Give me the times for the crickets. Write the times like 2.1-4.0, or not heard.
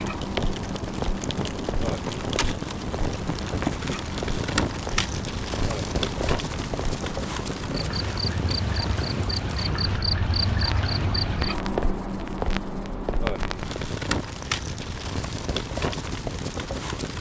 0.0-13.9.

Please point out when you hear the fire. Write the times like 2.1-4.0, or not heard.
0.0-17.1.